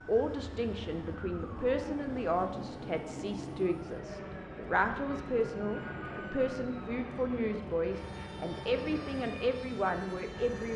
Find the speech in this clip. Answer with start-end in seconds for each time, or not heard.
0.1-10.7.